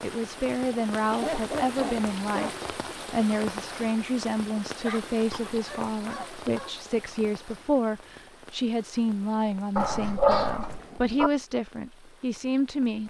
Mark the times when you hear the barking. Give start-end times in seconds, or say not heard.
1.1-2.7, 4.8-6.8, 9.8-11.3.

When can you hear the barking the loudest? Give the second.
10 s.